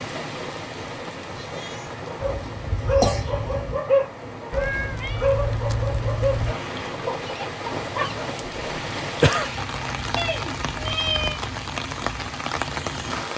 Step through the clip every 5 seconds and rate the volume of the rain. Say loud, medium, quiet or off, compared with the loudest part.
medium, loud, loud.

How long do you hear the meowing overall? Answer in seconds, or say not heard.
4 s.